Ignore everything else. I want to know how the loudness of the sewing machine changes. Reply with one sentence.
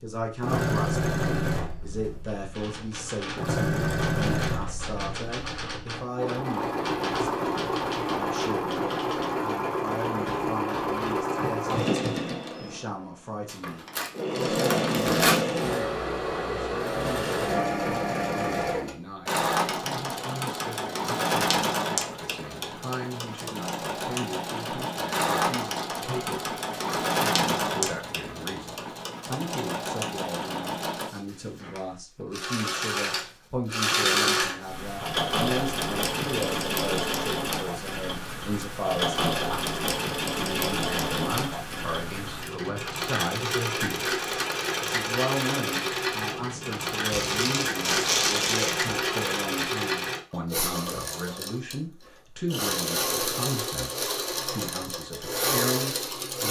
The loudness of the sewing machine stays about the same.